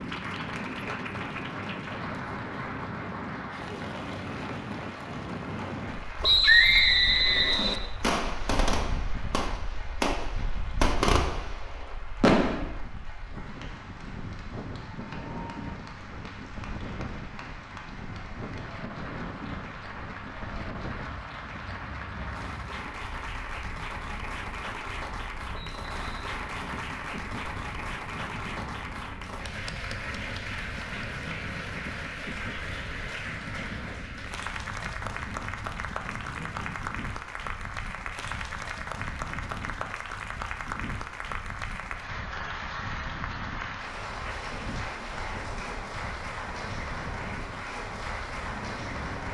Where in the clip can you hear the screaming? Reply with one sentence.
You can hear the screaming from 6.2 to 7.5 s.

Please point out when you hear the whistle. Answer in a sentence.
The whistle can be heard from 6.2 to 7.8 s and from 25.5 to 26.3 s.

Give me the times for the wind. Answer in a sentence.
The wind can be heard from 0.0 to 49.3 s.